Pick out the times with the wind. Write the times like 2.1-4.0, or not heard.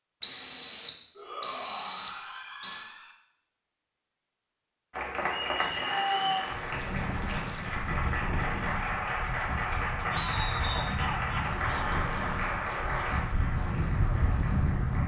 6.5-15.0.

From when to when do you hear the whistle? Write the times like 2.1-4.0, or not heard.
0.2-2.9, 5.3-6.5, 10.2-10.9.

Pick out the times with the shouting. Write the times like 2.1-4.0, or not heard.
1.1-3.1, 5.5-6.5, 10.1-11.9.